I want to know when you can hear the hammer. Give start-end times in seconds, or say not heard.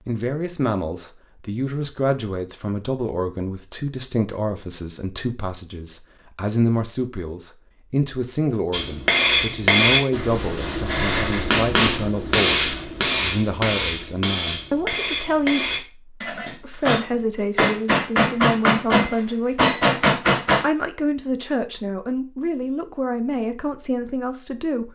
8.7-20.6.